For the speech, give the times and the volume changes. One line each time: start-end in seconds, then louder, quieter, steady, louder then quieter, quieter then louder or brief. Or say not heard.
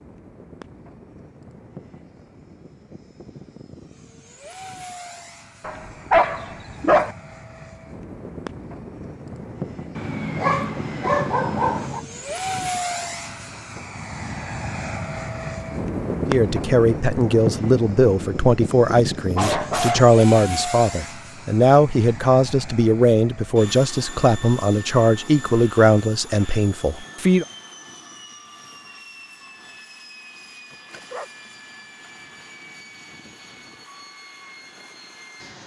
16.2-27.4 steady.